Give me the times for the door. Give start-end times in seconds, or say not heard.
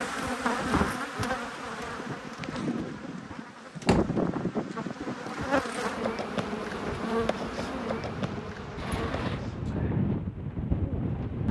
3.8-4.2, 8.8-9.8.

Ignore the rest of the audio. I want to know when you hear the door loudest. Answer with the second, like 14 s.
4 s.